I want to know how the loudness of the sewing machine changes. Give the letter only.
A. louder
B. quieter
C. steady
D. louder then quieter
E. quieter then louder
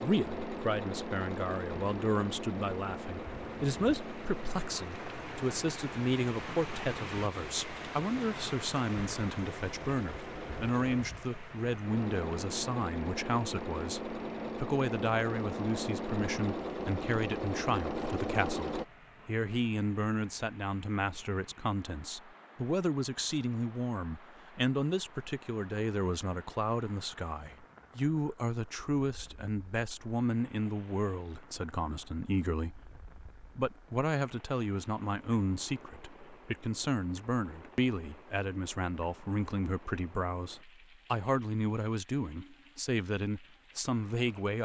E.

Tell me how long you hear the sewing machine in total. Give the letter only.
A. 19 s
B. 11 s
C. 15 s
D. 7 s
A.